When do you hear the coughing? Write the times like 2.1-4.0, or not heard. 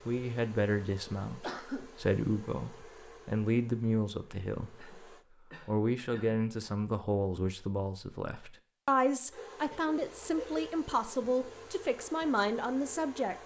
1.3-1.9, 4.8-6.5, 9.3-10.7.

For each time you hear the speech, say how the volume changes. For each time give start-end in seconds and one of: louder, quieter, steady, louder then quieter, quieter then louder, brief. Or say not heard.
0.1-13.3 steady.